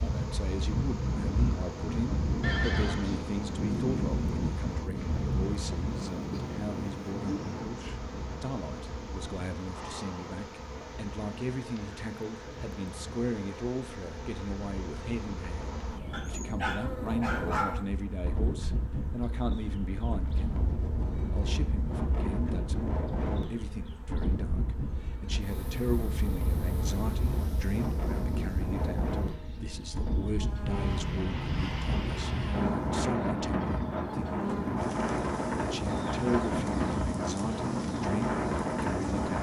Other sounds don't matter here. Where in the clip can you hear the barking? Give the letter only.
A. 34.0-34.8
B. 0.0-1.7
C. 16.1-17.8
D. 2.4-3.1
C.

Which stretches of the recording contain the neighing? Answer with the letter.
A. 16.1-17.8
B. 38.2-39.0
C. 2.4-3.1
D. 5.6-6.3
C.